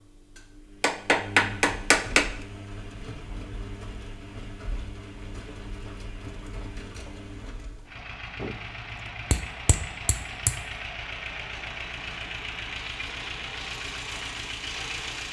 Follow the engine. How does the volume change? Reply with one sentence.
The loudness of the engine goes up.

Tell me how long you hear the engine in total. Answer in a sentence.
You can hear the engine for 15 seconds altogether.